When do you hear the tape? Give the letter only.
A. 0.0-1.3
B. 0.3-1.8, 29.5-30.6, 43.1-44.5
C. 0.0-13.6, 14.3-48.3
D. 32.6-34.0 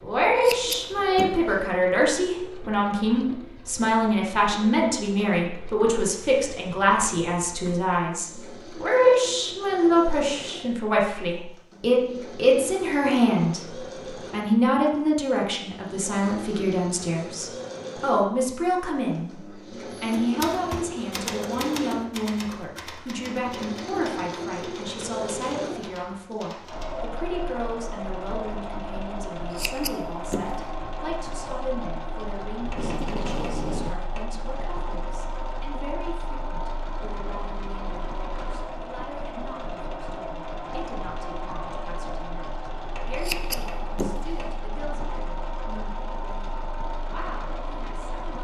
D.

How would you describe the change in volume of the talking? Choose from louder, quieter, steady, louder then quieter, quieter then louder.
quieter.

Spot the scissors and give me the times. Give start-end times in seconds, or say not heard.
0.3-1.8, 29.5-30.6, 43.1-44.5.